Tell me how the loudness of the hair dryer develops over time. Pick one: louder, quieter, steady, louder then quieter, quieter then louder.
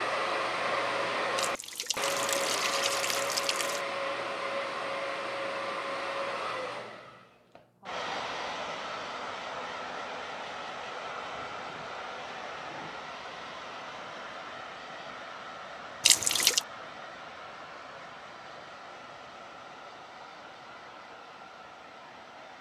quieter.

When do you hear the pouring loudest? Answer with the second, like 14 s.
16 s.